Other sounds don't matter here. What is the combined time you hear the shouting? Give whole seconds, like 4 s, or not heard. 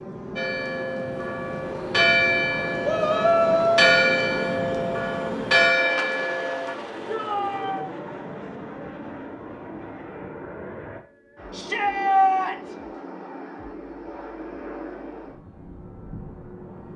3 s.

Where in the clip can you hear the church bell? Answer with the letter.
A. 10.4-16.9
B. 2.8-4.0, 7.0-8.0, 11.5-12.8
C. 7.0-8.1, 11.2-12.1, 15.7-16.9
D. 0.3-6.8
D.